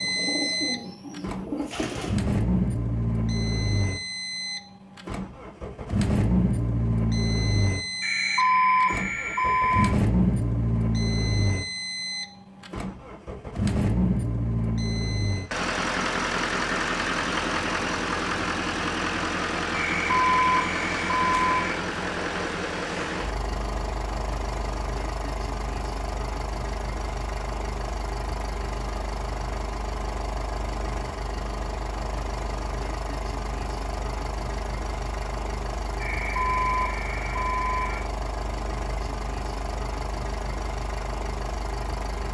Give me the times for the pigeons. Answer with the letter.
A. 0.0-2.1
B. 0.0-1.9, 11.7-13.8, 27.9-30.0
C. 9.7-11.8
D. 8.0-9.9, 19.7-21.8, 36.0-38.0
A.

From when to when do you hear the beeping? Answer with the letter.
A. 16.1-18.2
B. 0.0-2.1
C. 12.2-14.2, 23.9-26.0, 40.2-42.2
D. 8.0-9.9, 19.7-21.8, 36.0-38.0
D.